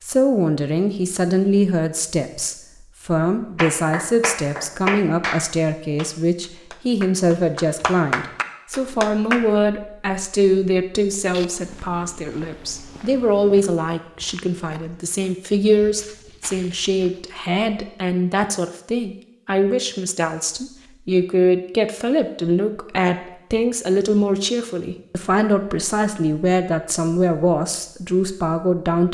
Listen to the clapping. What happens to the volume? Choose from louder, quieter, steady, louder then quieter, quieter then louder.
quieter then louder.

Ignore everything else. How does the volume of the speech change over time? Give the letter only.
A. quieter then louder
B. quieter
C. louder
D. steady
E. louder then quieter
D.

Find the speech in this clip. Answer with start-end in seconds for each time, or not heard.
0.0-29.0.